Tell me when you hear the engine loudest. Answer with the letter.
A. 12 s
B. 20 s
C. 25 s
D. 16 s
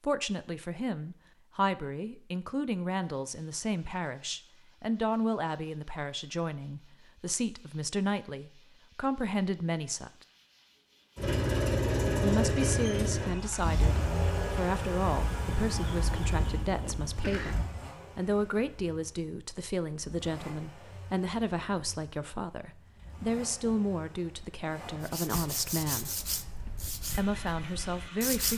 A.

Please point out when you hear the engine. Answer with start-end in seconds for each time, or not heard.
11.2-28.5.